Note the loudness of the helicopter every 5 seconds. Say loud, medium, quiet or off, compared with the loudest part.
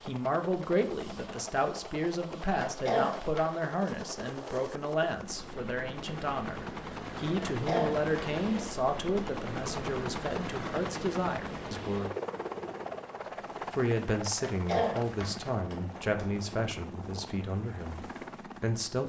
medium, loud, loud, medium.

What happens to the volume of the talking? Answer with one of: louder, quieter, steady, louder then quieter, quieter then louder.
steady.